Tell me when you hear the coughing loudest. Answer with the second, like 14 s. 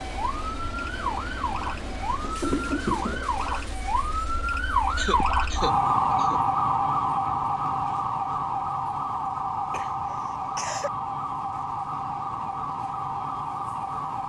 3 s.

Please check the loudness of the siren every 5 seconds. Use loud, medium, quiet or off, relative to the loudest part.
medium, loud, medium.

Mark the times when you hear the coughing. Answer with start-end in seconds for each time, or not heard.
2.2-3.2, 4.9-6.5, 9.7-10.9.